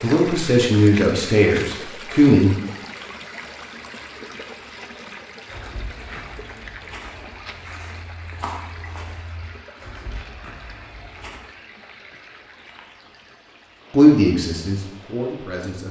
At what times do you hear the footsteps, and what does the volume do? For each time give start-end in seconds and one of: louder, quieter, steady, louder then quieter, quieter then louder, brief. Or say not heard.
5.5-11.4 louder then quieter.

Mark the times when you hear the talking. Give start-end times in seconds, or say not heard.
0.0-2.5, 13.9-15.8.